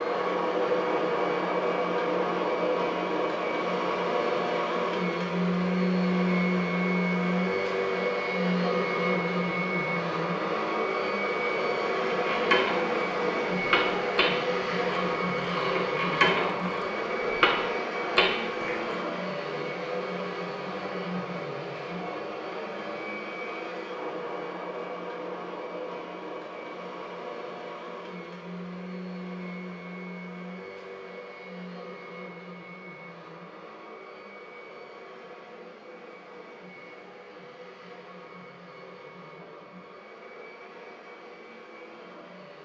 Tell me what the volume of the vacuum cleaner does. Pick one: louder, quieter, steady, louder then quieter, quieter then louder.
quieter.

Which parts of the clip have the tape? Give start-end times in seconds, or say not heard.
not heard.